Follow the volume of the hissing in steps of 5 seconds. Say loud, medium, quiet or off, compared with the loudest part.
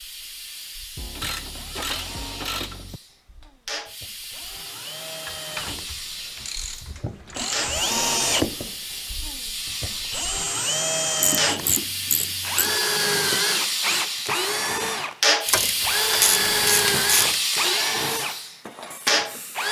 quiet, medium, loud, loud.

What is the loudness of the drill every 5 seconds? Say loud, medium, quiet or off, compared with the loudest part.
quiet, loud, loud, loud.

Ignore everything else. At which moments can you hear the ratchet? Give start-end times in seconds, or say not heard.
0.9-3.0, 5.2-7.9, 11.2-12.8, 15.4-17.4.